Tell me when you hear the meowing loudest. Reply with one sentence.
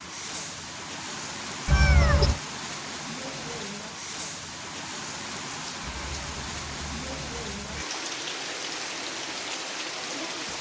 The loudest moment of the meowing is at 2 seconds.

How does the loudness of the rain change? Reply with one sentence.
The loudness of the rain stays about the same.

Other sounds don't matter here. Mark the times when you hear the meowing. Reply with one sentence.
The meowing can be heard from 1.6 to 2.4 s and from 5.8 to 7.8 s.